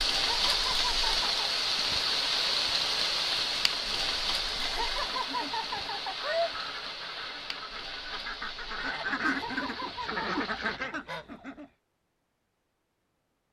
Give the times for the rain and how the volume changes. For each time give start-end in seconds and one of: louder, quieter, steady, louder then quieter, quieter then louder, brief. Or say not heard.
0.0-10.8 quieter.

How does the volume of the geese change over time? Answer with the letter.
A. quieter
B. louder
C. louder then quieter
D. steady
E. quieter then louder
B.